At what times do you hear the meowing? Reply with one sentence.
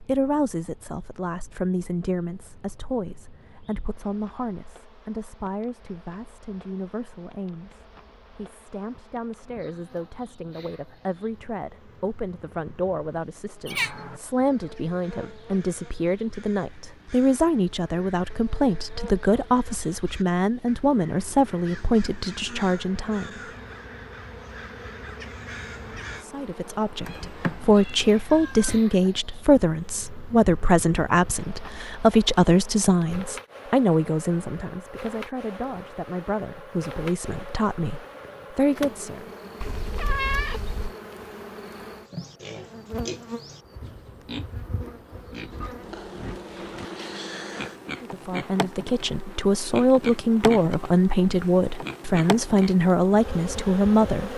You can hear the meowing from 13.7 to 14.2 s, from 27.1 to 28.8 s and from 39.6 to 41.0 s.